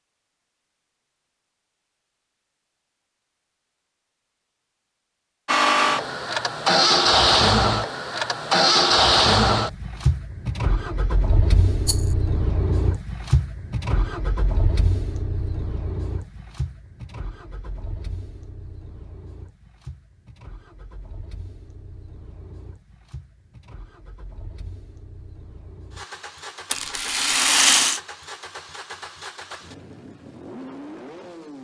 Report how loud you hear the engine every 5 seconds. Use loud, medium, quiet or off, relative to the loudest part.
off, loud, medium, quiet, quiet, quiet, quiet.